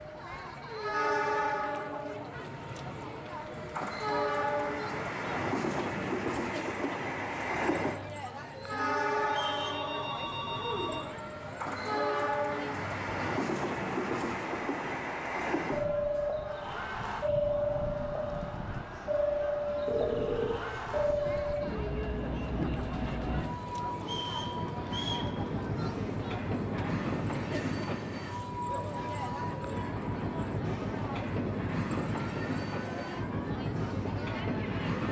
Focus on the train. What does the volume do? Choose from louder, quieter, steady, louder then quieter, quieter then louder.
steady.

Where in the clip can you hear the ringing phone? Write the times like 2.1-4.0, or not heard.
8.7-11.1, 19.9-21.0.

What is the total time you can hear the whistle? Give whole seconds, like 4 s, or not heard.
2 s.